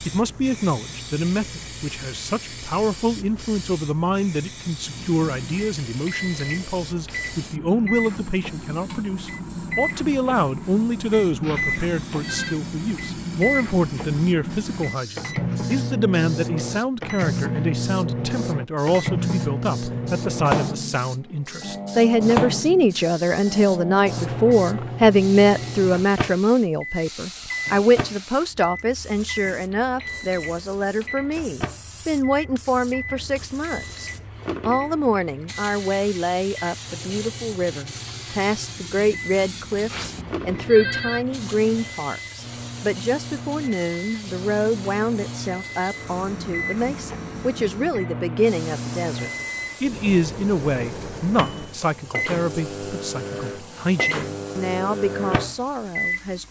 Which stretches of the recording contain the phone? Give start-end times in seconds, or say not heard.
11.4-12.6, 39.9-41.2.